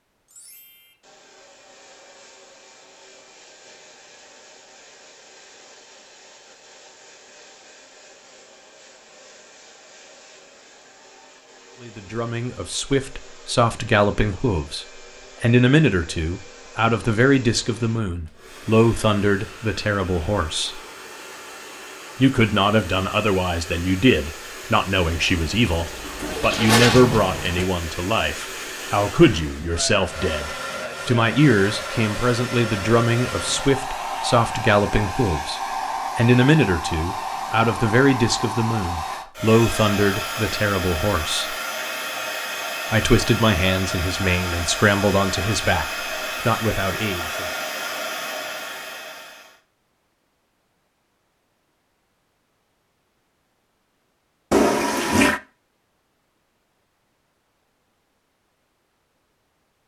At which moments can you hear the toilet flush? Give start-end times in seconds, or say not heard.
25.1-27.6, 54.5-55.4.